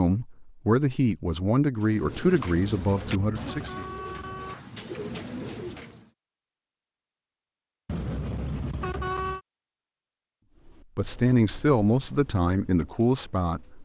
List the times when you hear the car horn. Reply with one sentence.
The car horn can be heard from 2.6 to 4.5 s and from 7.8 to 9.4 s.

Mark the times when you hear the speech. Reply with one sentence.
You can hear the speech from 0.0 to 3.9 s and from 10.9 to 13.8 s.